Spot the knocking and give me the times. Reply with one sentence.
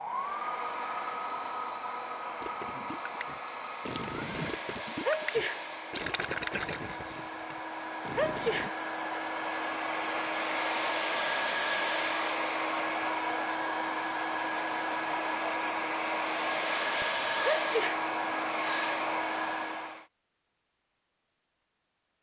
You can't hear the knocking here.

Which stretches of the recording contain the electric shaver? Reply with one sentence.
The electric shaver can't be heard in this clip.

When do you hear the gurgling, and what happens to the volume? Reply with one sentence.
You can hear the gurgling from 2.4 to 8.7 s, getting louder then quieter.